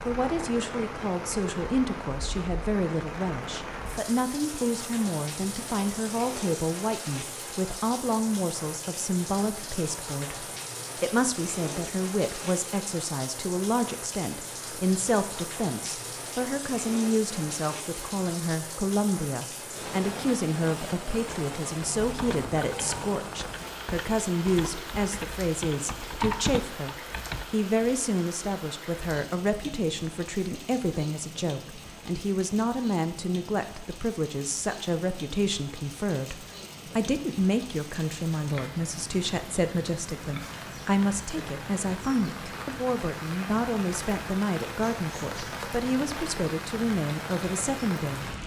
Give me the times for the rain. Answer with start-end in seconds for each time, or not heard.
0.0-48.4.